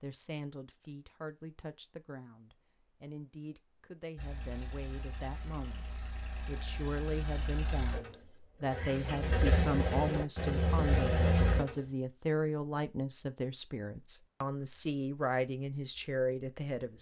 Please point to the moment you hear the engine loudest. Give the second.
11 s.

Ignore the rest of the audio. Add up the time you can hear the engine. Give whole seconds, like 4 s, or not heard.
8 s.